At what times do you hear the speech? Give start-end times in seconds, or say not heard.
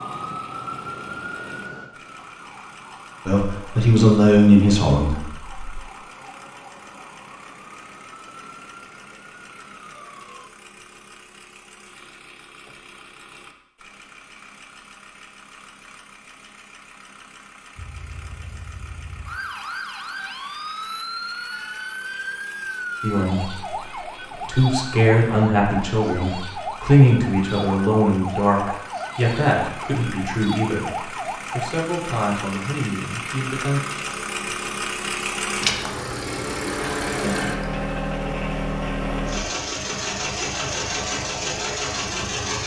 3.2-5.5, 23.0-33.8.